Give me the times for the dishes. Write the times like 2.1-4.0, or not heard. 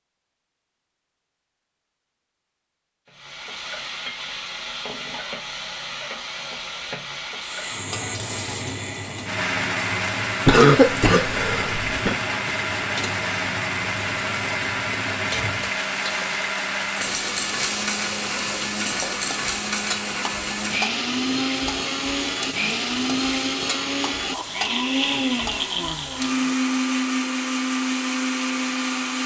not heard.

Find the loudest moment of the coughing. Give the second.
11 s.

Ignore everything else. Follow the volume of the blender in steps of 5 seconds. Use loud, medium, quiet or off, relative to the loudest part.
off, medium, loud, loud, loud, loud.